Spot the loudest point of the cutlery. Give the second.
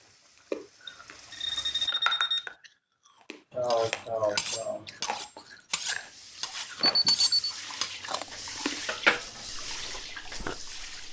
9 s.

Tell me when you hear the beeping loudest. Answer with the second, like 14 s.
7 s.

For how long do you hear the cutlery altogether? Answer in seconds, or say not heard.
7 s.